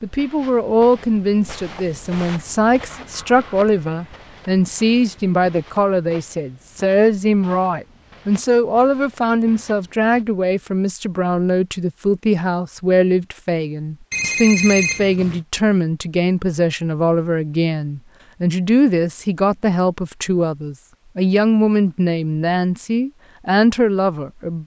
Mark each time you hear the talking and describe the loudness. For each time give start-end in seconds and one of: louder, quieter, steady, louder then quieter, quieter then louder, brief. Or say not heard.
0.0-24.6 steady.